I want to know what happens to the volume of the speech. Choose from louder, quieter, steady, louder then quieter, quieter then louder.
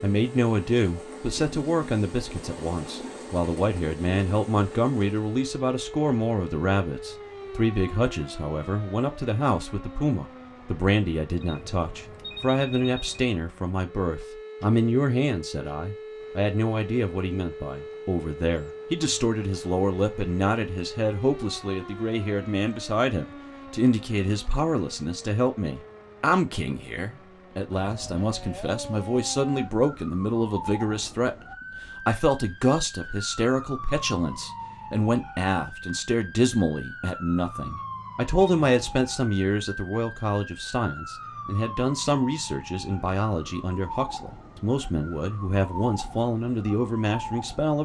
steady.